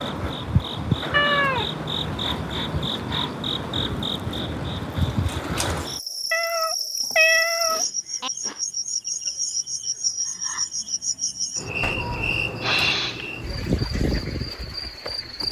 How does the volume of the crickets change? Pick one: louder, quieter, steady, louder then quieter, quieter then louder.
steady.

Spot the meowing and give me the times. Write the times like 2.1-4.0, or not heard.
1.1-2.1, 6.3-8.3, 11.8-12.2.